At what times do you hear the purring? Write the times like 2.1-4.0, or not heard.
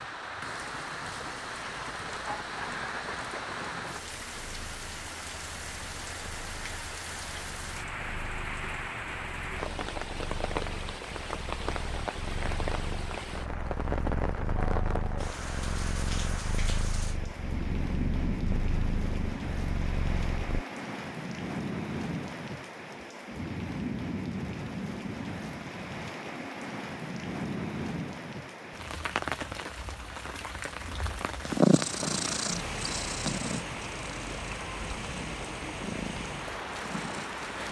1.9-20.6, 31.4-37.6.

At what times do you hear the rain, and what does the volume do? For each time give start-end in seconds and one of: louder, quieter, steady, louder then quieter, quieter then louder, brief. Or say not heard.
0.0-37.6 steady.